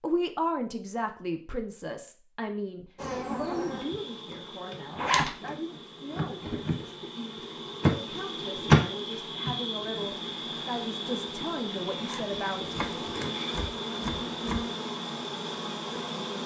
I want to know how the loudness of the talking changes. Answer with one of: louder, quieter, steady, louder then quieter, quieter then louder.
quieter then louder.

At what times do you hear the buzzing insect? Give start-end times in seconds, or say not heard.
3.0-16.4.